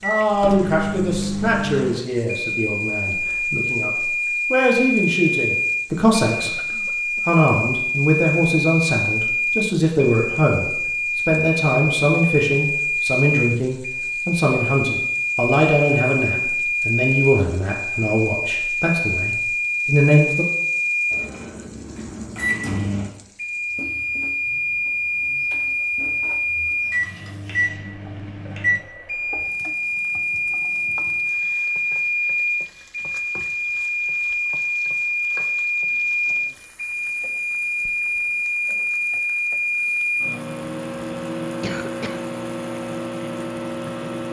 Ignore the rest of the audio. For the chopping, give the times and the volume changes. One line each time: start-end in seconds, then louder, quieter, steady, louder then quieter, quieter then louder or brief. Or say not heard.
not heard.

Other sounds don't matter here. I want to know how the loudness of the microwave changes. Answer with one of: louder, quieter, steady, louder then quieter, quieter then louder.
steady.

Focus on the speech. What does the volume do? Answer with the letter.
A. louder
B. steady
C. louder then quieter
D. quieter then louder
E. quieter
B.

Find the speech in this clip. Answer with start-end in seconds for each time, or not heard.
0.0-6.5, 7.2-20.4.